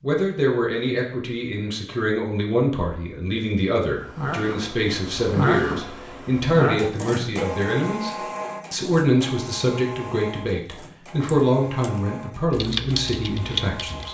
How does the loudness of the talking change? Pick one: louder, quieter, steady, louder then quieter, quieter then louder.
steady.